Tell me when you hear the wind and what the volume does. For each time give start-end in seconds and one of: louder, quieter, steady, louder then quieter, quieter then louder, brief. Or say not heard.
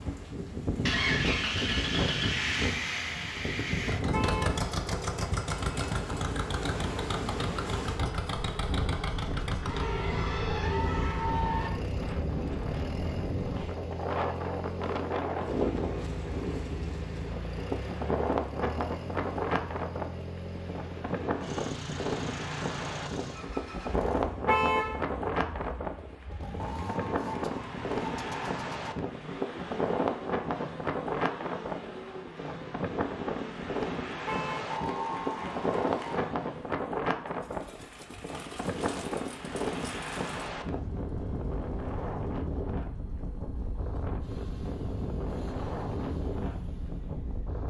0.0-47.6 steady.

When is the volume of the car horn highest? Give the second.
25 s.